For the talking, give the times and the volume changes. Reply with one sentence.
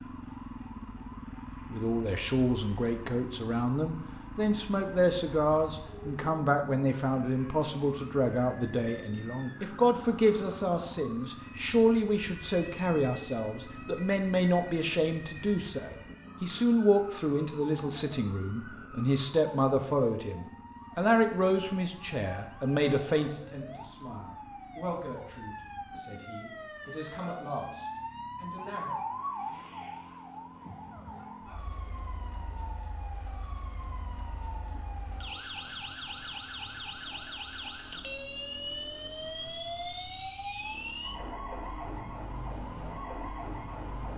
You can hear the talking from 1.7 to 28.9 s, getting quieter.